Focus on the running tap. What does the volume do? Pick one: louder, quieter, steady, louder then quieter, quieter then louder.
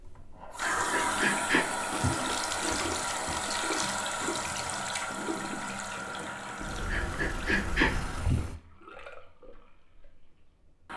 quieter.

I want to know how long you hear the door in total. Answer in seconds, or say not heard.
3 s.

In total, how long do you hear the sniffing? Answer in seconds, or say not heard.
3 s.